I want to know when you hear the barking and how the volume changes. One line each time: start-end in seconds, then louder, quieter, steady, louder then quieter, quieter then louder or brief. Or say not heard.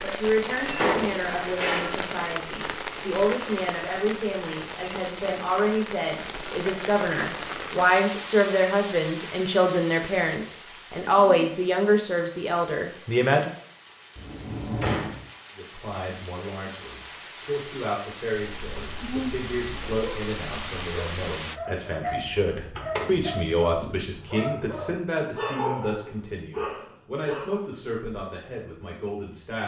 18.5-27.6 louder.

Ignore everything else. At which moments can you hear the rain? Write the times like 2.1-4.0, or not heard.
0.0-21.6.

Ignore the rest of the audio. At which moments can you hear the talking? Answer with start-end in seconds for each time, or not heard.
0.0-13.6, 15.6-29.6.